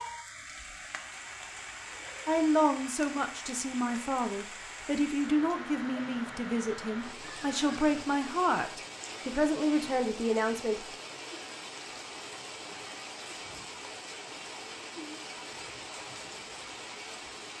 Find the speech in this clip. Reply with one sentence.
The speech can be heard from 2.2 to 10.8 s.